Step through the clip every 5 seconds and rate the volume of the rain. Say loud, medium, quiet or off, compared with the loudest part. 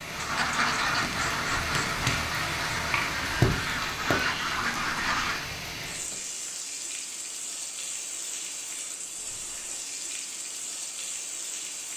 loud, medium, medium.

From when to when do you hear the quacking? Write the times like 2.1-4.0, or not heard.
0.1-5.5.